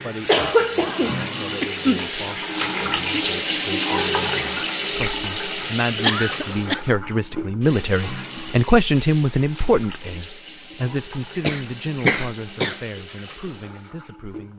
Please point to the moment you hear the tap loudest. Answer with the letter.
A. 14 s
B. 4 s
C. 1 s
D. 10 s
B.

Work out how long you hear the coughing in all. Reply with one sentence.
You can hear the coughing for 4 seconds altogether.